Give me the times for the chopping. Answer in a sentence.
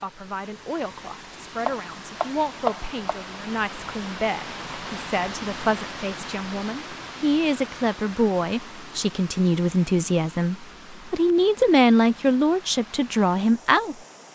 The chopping can be heard from 1.6 to 3.2 s.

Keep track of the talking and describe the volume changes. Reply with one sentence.
The volume of the talking goes up.